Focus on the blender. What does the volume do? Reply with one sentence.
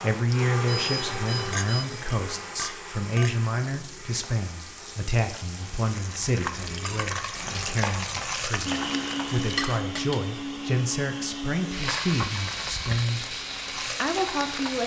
The volume of the blender goes down, then up.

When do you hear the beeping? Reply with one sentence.
The beeping can be heard from 0.7 to 1.9 s.